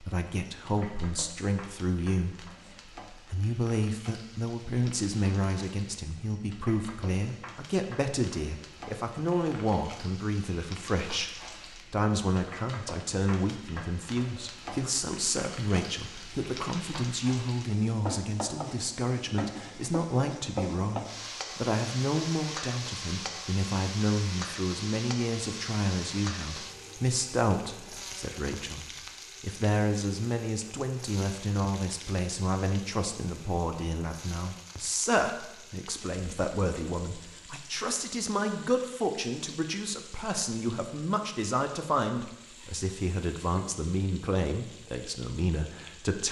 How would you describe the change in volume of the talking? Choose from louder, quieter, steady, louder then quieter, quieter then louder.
steady.